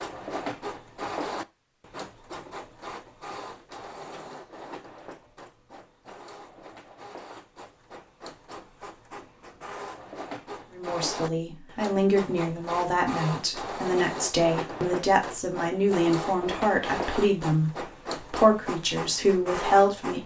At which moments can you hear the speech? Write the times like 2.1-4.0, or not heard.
10.7-20.2.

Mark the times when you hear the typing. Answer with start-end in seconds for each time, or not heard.
not heard.